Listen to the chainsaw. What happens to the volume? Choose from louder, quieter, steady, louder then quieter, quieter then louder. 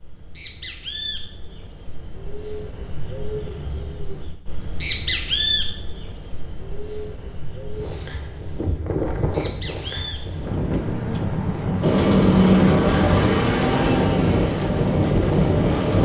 quieter.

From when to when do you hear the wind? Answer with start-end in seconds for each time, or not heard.
7.7-16.0.